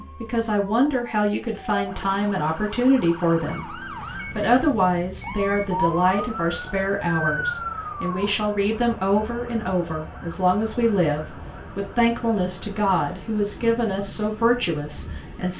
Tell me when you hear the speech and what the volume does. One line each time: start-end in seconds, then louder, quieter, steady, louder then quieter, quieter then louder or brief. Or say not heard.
0.0-15.5 steady.